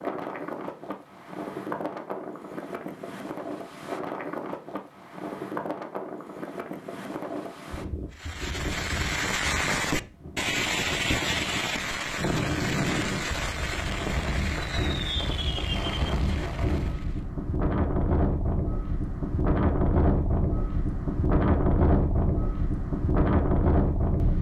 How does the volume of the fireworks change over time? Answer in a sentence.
The volume of the fireworks goes down.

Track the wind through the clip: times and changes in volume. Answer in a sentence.
You can hear the wind from 0.0 to 24.3 s, getting louder.